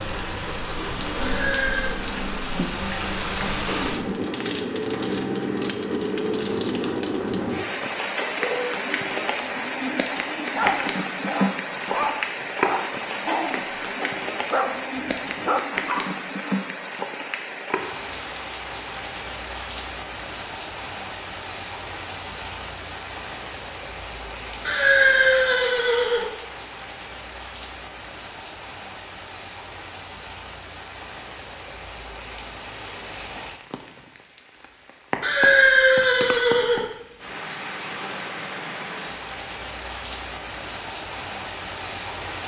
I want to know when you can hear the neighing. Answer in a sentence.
The neighing can be heard from 1.2 to 1.9 s, from 24.6 to 26.2 s and from 35.2 to 36.9 s.